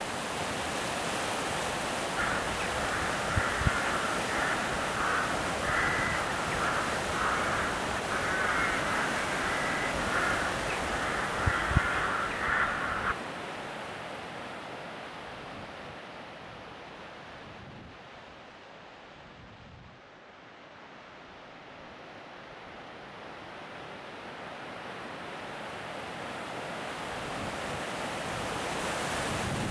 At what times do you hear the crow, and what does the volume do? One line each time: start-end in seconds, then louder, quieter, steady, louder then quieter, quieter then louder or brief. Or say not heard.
2.1-13.2 steady.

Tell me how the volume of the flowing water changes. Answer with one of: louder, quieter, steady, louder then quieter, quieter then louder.
quieter then louder.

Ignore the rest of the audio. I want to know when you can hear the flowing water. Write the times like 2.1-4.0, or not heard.
0.0-29.6.